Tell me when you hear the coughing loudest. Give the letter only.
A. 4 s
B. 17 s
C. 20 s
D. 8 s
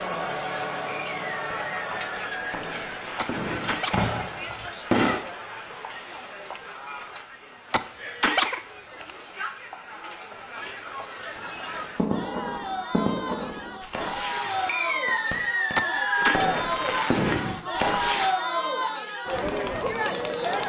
D.